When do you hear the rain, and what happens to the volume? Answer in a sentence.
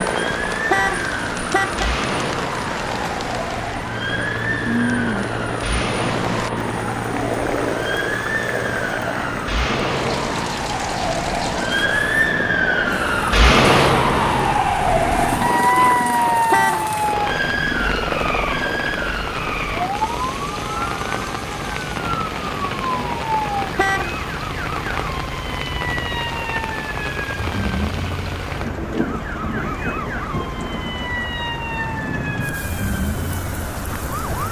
You can hear the rain from 0.0 to 34.4 s, at a steady volume.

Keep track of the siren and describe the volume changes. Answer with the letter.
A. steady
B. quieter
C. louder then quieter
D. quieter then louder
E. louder
C.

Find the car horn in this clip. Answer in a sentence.
The car horn can be heard from 0.7 to 1.9 s, from 16.5 to 16.9 s and from 23.8 to 24.2 s.